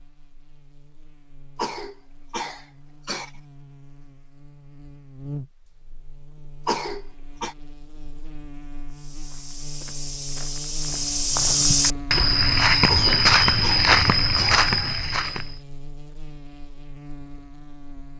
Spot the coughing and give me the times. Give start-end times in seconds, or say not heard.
1.6-3.3, 6.7-7.5, 12.8-14.6.